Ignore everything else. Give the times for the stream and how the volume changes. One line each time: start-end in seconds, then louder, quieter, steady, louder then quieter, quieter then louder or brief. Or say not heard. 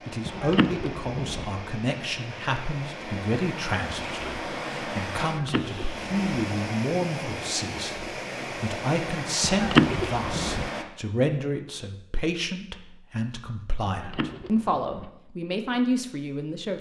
0.0-10.8 louder.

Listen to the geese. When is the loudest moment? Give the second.
10 s.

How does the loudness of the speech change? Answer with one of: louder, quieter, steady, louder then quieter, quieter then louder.
steady.